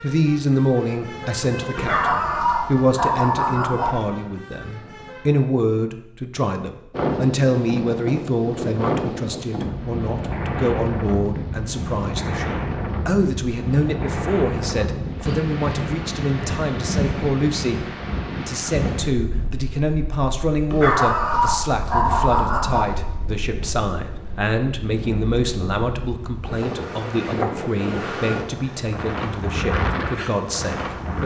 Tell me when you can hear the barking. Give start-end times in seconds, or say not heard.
1.8-4.0, 20.7-23.1.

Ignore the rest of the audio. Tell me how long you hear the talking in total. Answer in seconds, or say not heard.
31 s.